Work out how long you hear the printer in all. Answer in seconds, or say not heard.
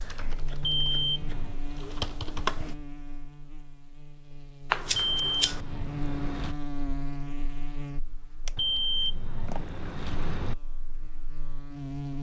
not heard.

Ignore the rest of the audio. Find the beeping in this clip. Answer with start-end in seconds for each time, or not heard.
0.6-1.6, 4.9-6.5, 8.6-10.6.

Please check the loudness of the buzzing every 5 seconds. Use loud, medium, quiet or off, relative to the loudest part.
medium, loud, loud.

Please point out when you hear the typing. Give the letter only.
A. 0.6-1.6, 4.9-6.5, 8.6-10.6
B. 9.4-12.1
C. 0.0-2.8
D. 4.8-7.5
C.